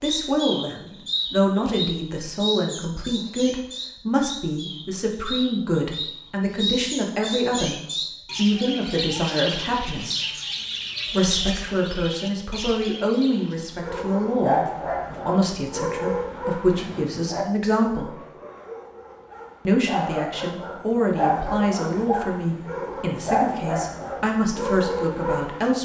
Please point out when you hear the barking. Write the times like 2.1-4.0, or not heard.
13.8-25.7.